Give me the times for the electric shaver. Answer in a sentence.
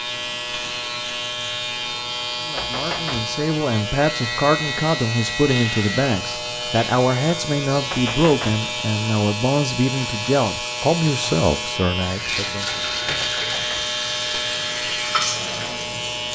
The electric shaver can be heard from 0.0 to 16.3 s.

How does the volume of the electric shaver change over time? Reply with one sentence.
The loudness of the electric shaver stays about the same.